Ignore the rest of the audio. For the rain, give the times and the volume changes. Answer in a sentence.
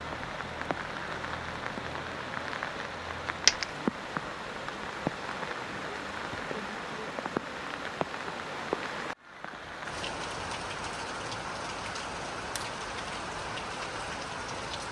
The rain can be heard from 0.0 to 14.8 s, at a steady volume.